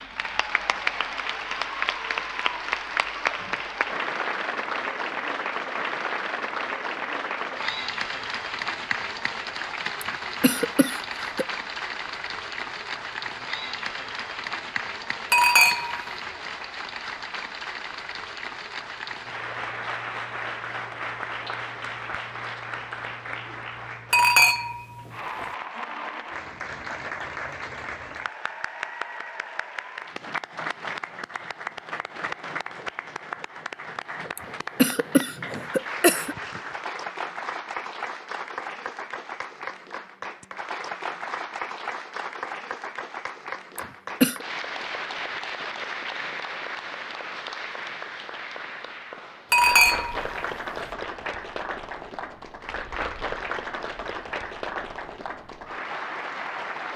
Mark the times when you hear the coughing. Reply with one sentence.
You can hear the coughing from 10.0 to 11.4 s, from 34.4 to 36.4 s and from 43.8 to 44.5 s.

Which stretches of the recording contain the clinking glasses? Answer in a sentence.
You can hear the clinking glasses from 15.3 to 16.1 s, from 24.1 to 25.4 s and from 49.5 to 50.9 s.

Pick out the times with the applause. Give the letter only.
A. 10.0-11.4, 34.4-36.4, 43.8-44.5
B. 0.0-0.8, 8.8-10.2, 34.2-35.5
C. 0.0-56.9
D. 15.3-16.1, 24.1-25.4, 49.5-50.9
C.